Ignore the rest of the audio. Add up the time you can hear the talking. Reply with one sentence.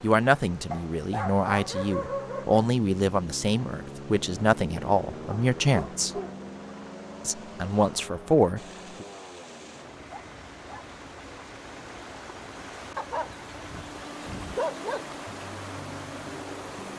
The talking can be heard for 8 seconds in total.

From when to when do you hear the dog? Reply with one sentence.
You can hear the dog from 0.7 to 2.6 s, from 5.3 to 6.4 s, from 10.1 to 10.8 s and from 12.9 to 15.2 s.